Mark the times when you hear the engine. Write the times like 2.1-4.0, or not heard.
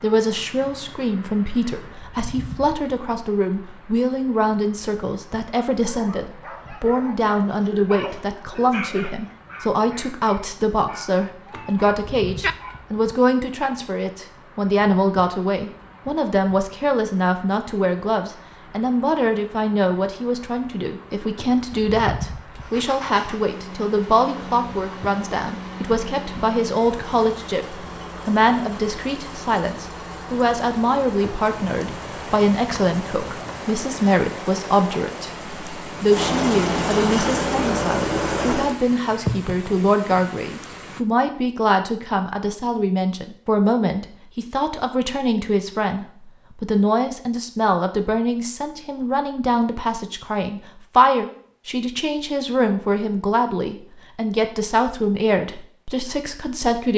22.6-38.8.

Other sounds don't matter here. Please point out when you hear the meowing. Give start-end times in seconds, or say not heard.
11.4-12.6.